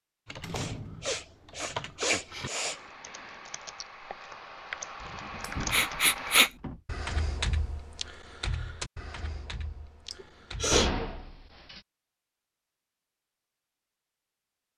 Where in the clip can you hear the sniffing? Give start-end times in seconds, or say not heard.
0.5-2.8, 5.7-6.5, 10.1-11.1.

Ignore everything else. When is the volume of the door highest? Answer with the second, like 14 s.
11 s.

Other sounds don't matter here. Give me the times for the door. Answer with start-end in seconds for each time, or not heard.
0.4-1.2, 5.0-6.8, 10.7-11.8.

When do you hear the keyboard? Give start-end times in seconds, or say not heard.
0.2-10.8.